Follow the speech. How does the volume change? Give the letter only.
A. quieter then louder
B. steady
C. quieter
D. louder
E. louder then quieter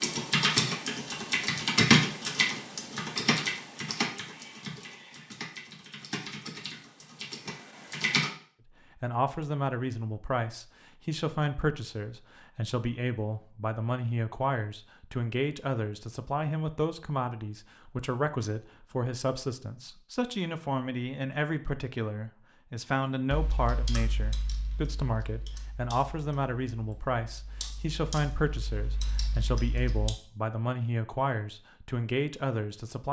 B.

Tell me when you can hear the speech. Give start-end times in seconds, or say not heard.
8.7-33.0.